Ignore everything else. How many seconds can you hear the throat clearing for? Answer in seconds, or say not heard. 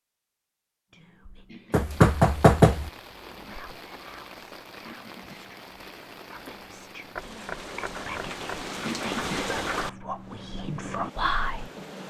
2 s.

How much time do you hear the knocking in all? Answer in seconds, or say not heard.
3 s.